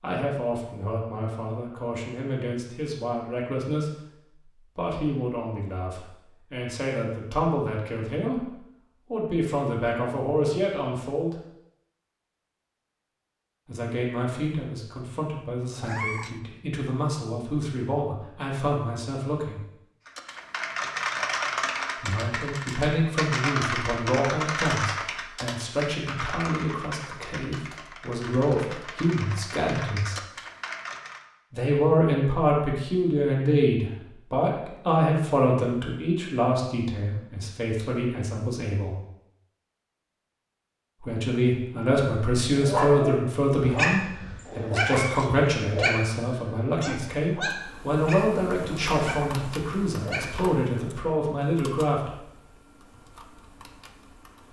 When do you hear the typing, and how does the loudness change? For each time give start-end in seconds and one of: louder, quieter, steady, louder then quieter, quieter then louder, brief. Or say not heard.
20.1-31.2 quieter
47.5-54.4 quieter.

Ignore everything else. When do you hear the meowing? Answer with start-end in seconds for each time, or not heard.
15.8-16.4, 44.9-45.4.